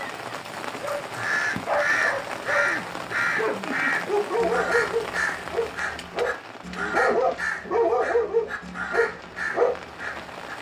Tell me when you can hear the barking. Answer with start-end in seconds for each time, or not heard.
0.8-9.8.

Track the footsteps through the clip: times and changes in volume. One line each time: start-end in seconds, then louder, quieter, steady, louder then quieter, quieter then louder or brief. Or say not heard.
not heard.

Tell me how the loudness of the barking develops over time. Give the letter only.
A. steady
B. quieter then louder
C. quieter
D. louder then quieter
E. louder
E.